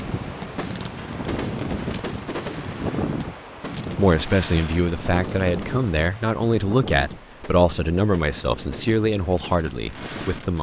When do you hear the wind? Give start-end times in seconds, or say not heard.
0.0-10.5.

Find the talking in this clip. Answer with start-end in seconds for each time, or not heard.
4.0-10.5.